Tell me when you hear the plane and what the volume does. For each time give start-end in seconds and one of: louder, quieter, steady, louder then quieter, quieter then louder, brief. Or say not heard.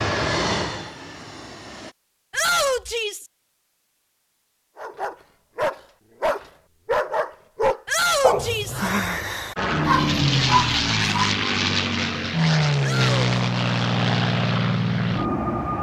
0.0-1.9 brief
9.6-15.7 steady.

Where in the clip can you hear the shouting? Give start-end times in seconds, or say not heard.
2.3-3.2, 7.8-8.8, 12.8-13.3.